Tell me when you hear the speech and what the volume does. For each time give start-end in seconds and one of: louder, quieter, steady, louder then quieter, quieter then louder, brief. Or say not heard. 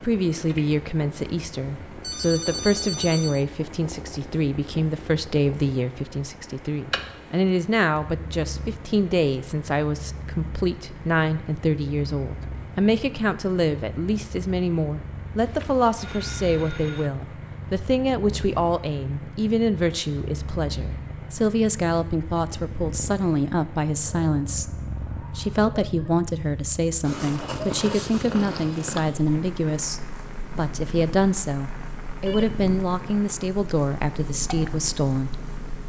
0.0-35.8 steady.